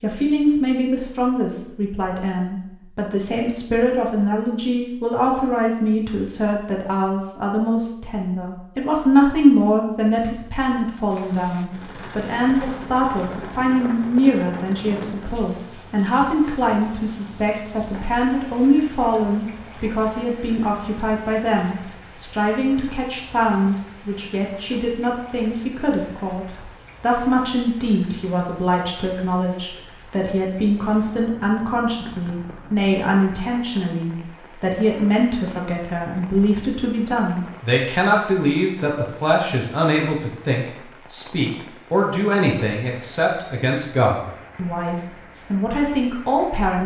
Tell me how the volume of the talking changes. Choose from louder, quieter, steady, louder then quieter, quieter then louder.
steady.